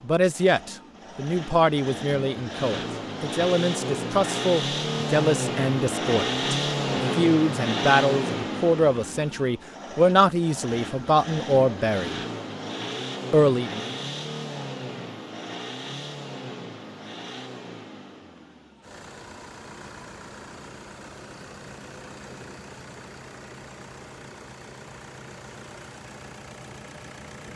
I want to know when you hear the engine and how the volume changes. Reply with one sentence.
The engine can be heard from 0.0 to 27.5 s, getting quieter.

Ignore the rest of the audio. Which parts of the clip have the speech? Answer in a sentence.
You can hear the speech from 0.0 to 12.2 s and from 13.3 to 13.9 s.